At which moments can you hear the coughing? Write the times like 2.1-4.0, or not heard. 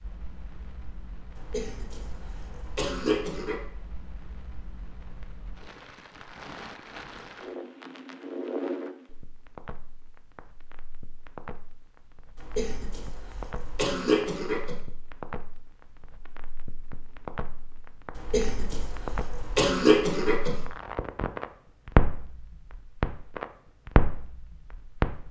1.4-3.5, 12.3-14.8, 18.1-20.6.